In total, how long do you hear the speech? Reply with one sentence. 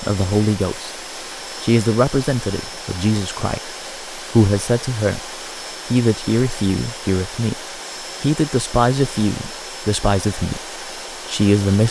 You can hear the speech for 9 seconds altogether.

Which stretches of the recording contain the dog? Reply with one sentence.
The dog can't be heard in this clip.